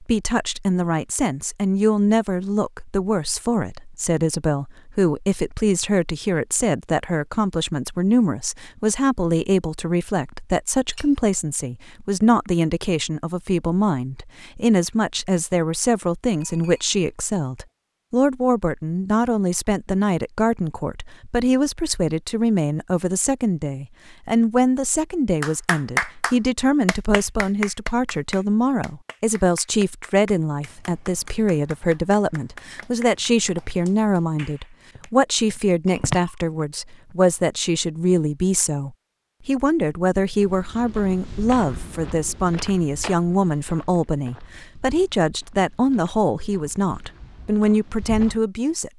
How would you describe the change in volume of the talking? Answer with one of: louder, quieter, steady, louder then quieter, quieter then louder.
steady.